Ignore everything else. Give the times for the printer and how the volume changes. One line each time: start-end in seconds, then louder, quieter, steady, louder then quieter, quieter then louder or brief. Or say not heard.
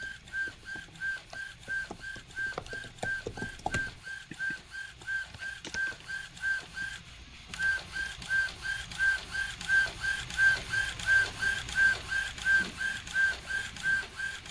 0.0-14.4 louder.